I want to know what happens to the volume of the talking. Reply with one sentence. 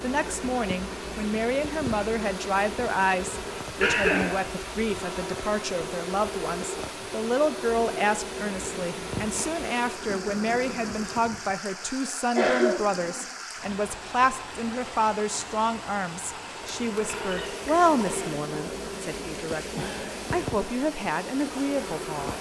The loudness of the talking stays about the same.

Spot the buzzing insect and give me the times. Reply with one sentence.
The buzzing insect can be heard from 0.0 to 11.6 s and from 16.8 to 22.3 s.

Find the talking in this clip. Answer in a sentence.
You can hear the talking from 0.0 to 22.3 s.